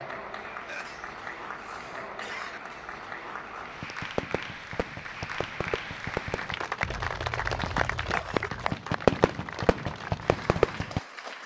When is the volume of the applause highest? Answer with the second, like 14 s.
8 s.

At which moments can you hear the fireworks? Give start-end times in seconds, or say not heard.
3.8-11.0.